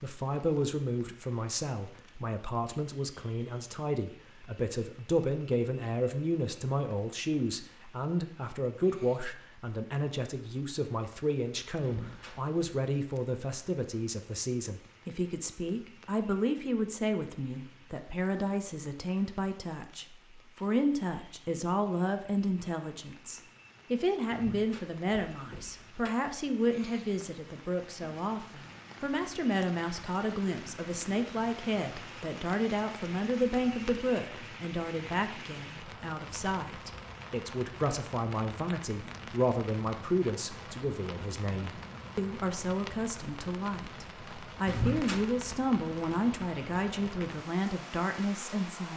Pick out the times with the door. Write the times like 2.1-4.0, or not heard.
11.8-12.6, 24.3-26.1, 44.6-45.4.